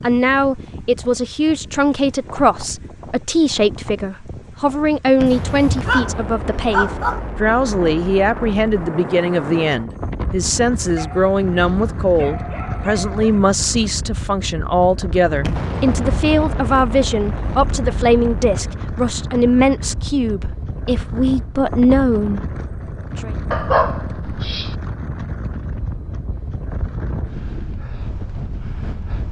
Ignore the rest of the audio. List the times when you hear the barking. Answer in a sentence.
The barking can be heard from 5.3 to 7.2 s, from 10.9 to 13.4 s and from 23.5 to 24.8 s.